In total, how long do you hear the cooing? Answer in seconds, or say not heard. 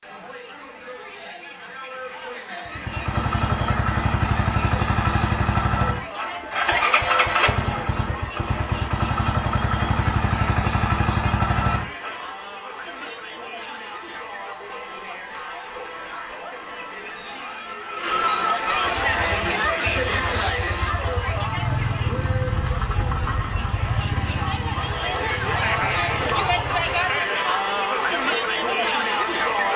not heard.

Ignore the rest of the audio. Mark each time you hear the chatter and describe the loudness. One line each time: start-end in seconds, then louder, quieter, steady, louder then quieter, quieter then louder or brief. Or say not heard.
0.0-29.7 louder.